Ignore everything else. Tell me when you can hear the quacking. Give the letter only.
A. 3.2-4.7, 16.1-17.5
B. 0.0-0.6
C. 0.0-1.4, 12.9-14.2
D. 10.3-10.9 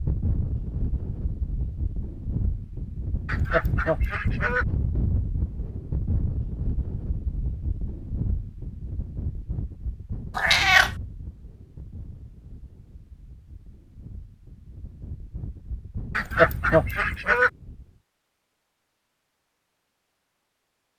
A.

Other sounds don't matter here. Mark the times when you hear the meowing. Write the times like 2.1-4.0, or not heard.
10.3-10.9.